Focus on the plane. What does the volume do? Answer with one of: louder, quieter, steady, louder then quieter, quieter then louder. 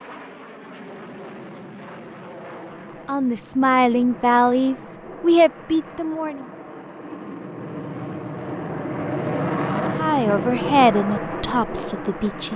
louder.